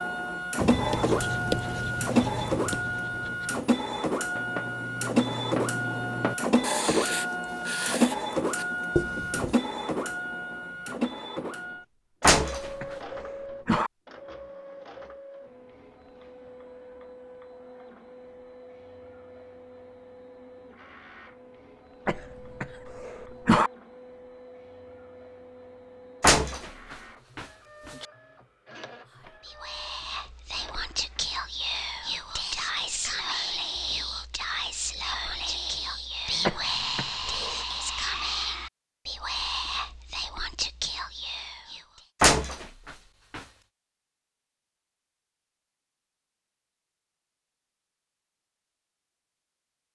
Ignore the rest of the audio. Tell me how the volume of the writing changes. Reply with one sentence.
The volume of the writing goes down, then up.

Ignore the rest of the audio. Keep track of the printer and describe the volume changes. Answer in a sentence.
The loudness of the printer goes down.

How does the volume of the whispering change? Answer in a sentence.
The volume of the whispering stays about the same.